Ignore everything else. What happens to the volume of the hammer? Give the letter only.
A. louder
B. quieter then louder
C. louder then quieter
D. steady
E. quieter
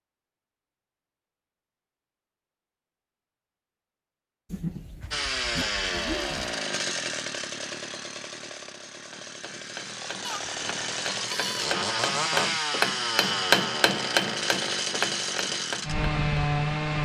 C.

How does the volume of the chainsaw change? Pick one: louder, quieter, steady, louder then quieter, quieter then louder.
quieter then louder.